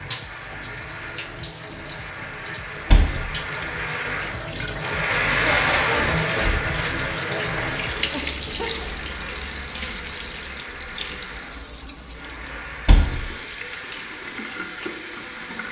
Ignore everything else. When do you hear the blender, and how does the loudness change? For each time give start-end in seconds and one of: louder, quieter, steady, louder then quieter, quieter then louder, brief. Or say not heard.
0.0-15.6 louder then quieter.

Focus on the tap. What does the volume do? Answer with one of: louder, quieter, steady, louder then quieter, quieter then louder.
louder then quieter.